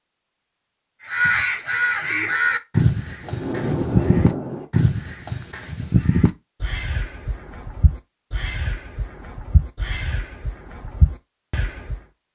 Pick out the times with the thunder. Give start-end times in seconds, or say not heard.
3.2-4.7.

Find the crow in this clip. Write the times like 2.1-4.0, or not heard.
1.1-12.0.